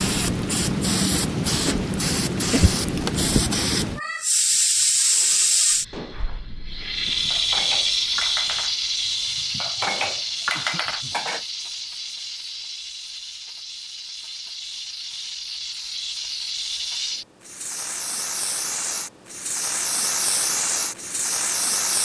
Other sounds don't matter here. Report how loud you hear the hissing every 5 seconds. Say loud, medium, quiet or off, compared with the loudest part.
loud, loud, medium, medium, loud.